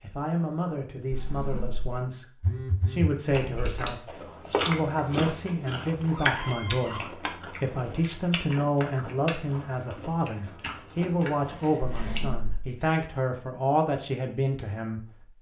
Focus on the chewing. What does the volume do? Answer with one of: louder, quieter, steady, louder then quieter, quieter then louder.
quieter.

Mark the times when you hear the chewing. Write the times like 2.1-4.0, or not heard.
3.3-12.2.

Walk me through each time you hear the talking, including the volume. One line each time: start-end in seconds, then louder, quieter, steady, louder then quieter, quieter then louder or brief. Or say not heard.
0.0-15.3 steady.